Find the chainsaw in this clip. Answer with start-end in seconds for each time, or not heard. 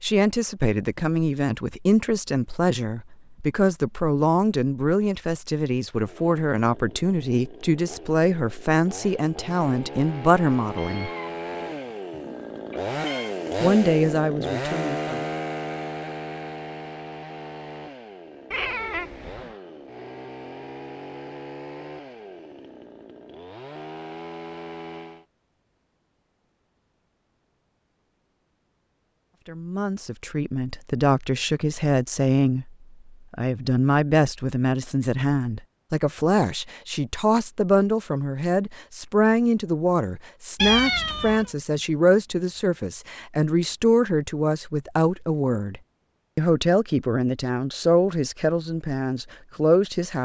6.0-25.2.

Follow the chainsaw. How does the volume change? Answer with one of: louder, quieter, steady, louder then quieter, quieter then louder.
louder then quieter.